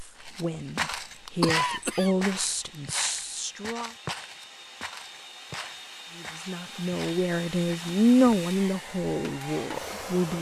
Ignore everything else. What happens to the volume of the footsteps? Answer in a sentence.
The loudness of the footsteps goes down.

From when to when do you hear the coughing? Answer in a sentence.
You can hear the coughing from 1.2 to 2.1 s.